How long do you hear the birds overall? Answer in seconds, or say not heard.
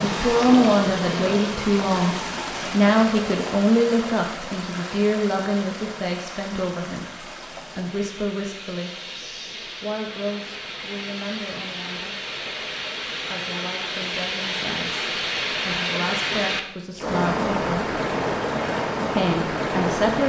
not heard.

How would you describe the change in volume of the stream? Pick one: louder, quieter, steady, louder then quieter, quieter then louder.
quieter then louder.